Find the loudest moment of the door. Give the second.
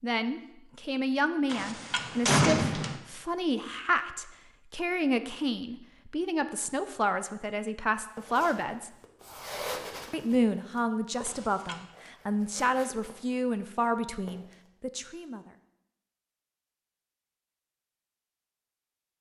2 s.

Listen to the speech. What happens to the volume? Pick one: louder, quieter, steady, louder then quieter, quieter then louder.
steady.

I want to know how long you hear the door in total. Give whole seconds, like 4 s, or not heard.
2 s.